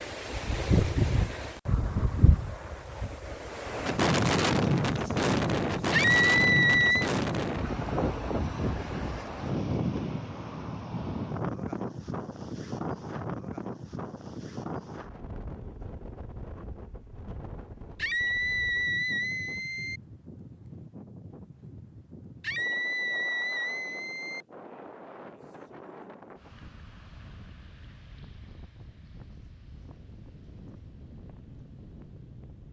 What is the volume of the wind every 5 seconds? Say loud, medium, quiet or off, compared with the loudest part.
loud, loud, medium, quiet, quiet, quiet, quiet.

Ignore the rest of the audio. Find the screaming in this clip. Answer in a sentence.
You can hear the screaming from 5.9 to 7.1 s, from 17.9 to 20.0 s and from 22.4 to 24.4 s.